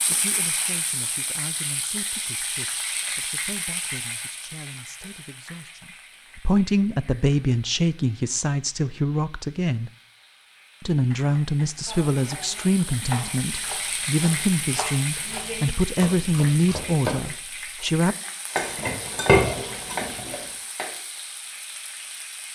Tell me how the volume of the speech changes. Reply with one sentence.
The loudness of the speech goes up.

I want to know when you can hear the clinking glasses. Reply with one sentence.
You can hear the clinking glasses from 18.6 to 20.4 s.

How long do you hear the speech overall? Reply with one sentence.
You can hear the speech for 17 seconds altogether.